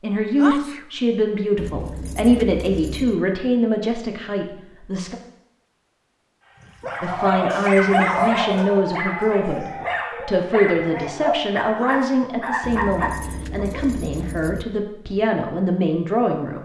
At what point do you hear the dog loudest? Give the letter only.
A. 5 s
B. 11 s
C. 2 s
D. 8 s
D.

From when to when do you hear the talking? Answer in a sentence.
You can hear the talking from 0.0 to 5.2 s and from 7.0 to 16.6 s.